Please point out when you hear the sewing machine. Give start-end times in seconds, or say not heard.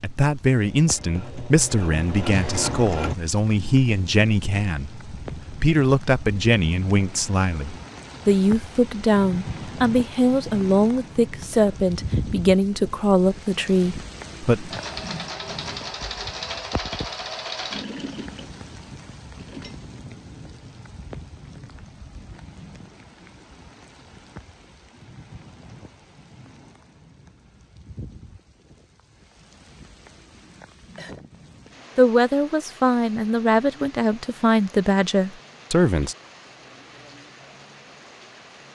0.0-3.1, 14.7-19.8.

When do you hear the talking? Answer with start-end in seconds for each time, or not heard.
0.0-14.8, 31.9-36.1.